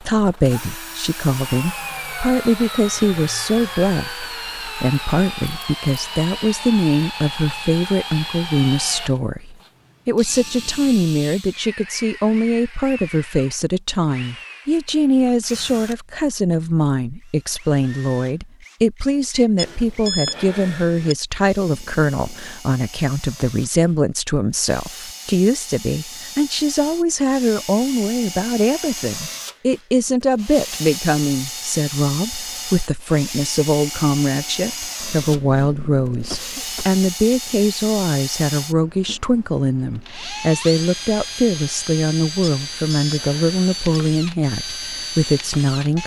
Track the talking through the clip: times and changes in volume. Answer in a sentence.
You can hear the talking from 0.0 to 46.0 s, at a steady volume.